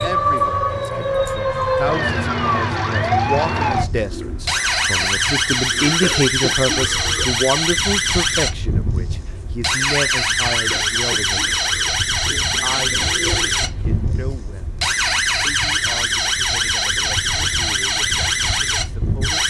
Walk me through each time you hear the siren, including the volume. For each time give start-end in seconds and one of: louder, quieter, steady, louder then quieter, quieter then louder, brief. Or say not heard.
0.0-19.4 steady.